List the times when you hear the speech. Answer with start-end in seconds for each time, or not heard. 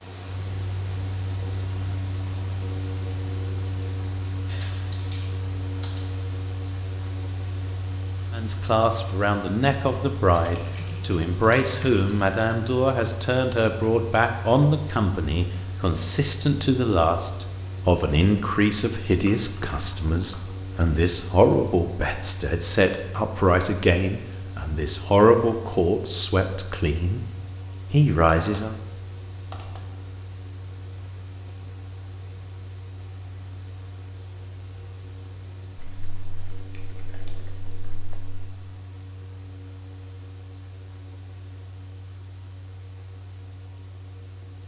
8.3-27.2, 27.9-28.8.